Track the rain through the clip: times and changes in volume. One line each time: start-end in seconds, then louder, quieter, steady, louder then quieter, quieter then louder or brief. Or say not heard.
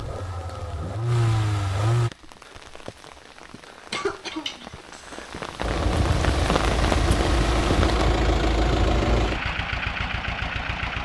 0.0-8.1 louder.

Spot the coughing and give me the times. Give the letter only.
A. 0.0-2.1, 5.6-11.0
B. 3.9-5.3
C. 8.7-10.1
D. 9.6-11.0
B.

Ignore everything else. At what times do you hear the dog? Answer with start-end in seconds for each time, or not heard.
not heard.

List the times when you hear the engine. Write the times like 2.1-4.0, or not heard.
0.0-2.1, 5.6-11.0.